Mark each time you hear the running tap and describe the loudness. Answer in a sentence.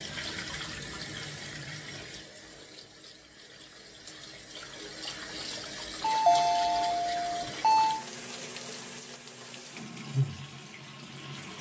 The running tap can be heard from 0.0 to 11.5 s, getting quieter then louder.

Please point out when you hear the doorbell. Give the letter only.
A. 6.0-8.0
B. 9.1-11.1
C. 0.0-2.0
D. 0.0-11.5
A.